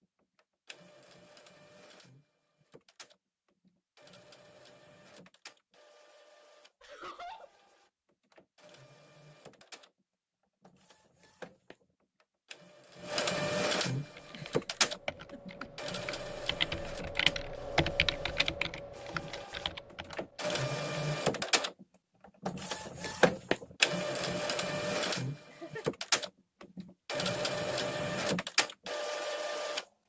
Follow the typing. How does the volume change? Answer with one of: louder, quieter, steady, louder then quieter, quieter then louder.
louder then quieter.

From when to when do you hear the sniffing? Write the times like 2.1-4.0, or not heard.
not heard.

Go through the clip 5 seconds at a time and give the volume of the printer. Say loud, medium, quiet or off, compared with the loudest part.
quiet, quiet, loud, quiet, loud, loud.